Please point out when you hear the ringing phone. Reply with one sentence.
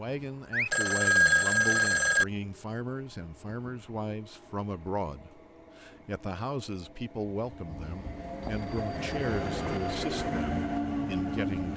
You can hear the ringing phone from 0.5 to 2.2 s and from 7.7 to 9.9 s.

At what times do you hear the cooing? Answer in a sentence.
The cooing can't be heard in this clip.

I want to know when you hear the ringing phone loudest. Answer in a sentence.
The volume of the ringing phone peaks at 1 second.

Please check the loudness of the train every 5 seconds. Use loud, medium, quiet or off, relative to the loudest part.
quiet, medium, loud.